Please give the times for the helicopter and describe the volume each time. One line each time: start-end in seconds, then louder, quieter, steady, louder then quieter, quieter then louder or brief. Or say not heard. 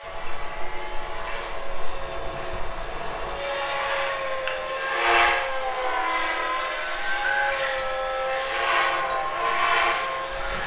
0.0-10.6 louder.